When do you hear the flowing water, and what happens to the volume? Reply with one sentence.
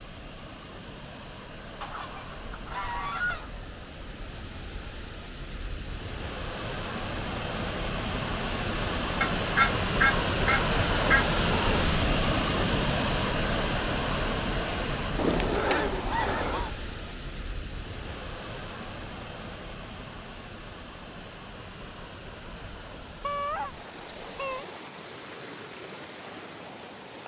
The flowing water can be heard from 0.0 to 27.2 s, getting louder then quieter.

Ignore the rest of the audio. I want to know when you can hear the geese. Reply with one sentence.
The geese can be heard from 1.8 to 3.5 s, from 9.2 to 11.2 s, from 15.2 to 16.7 s and from 22.5 to 24.6 s.